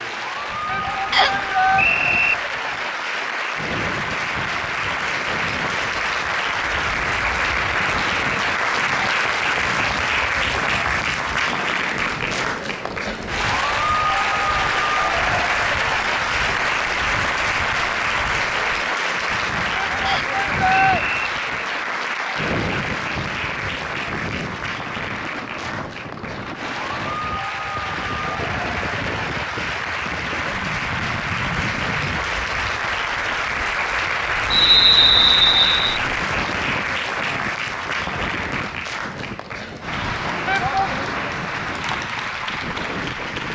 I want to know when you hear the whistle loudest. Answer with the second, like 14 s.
35 s.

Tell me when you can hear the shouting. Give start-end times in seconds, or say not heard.
0.7-1.9, 19.8-21.1, 40.5-41.1.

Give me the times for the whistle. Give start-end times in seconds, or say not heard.
1.1-2.4, 20.1-21.1, 34.5-36.0.